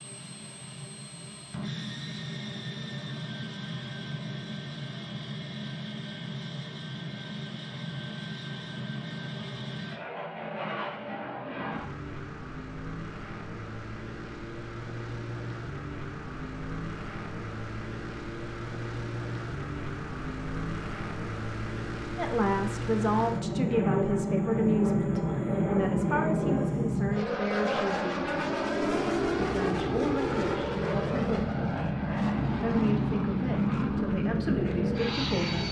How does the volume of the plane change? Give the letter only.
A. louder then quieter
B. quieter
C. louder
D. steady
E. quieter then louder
C.